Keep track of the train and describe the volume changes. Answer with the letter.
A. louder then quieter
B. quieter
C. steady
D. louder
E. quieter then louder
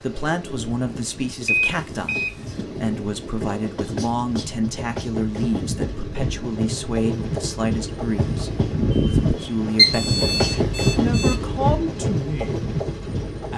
D.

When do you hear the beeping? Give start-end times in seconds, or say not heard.
1.4-2.6, 9.8-11.3.